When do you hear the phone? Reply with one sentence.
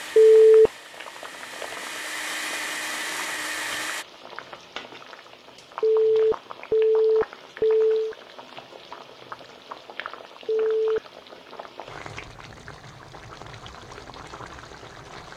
You can hear the phone from 0.1 to 0.7 s, from 5.8 to 8.2 s and from 10.4 to 11.0 s.